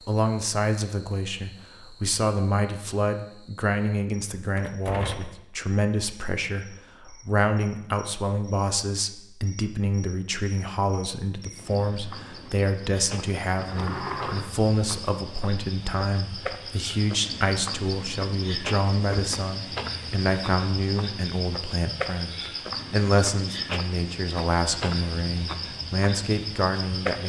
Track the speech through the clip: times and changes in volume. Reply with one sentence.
You can hear the speech from 0.0 to 27.2 s, at a steady volume.